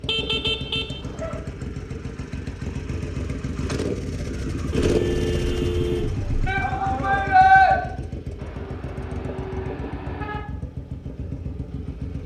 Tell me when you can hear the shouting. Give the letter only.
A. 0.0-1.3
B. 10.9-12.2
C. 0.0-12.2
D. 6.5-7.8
D.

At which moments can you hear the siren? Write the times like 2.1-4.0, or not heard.
not heard.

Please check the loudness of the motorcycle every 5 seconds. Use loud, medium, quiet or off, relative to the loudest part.
loud, loud, medium.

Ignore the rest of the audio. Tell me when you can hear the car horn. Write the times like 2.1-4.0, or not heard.
0.1-1.4, 4.7-6.5, 8.3-10.4.